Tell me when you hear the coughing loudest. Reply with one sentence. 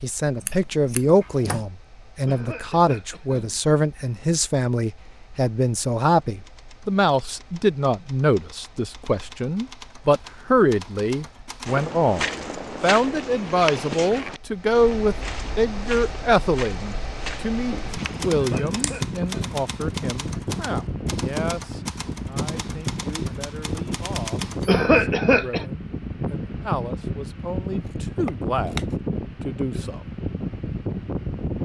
The volume of the coughing peaks at 25 seconds.